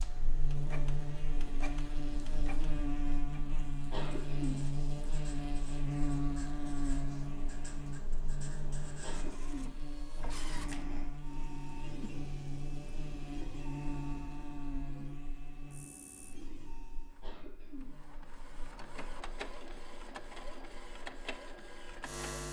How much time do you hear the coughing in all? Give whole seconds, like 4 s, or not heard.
4 s.